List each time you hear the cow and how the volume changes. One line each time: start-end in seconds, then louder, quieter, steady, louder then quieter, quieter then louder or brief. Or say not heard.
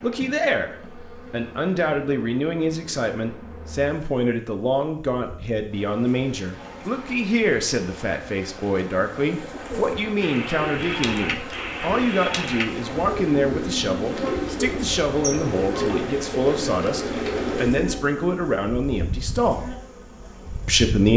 not heard.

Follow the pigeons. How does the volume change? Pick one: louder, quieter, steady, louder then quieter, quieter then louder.
steady.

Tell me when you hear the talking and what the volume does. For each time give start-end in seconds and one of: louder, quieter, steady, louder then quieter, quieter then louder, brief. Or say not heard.
0.0-19.8 steady
20.6-21.1 brief.